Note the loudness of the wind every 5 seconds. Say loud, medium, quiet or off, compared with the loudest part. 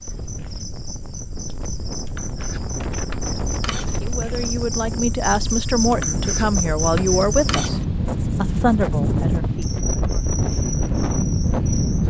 medium, loud, loud.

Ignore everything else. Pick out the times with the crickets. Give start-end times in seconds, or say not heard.
0.0-12.0.